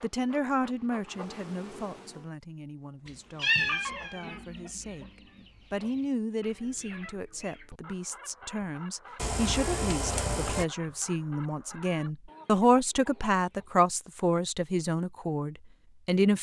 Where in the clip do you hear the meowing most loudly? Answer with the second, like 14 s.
4 s.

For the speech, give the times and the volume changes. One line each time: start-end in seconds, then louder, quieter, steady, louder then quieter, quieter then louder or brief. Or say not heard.
0.0-16.3 louder.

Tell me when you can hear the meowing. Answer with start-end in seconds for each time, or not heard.
3.0-4.4, 9.2-10.7.